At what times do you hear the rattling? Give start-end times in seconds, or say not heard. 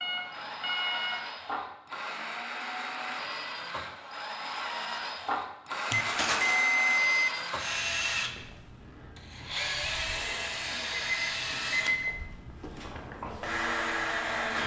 6.0-6.6.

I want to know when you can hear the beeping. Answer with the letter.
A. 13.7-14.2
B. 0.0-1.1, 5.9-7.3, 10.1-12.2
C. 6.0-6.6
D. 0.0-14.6
B.